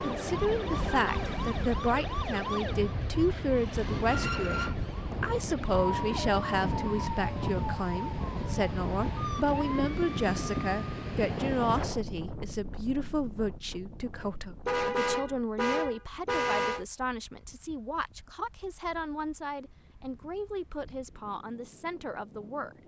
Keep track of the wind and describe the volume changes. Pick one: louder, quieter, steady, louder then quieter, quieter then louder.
quieter.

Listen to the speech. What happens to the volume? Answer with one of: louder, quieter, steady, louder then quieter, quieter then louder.
quieter.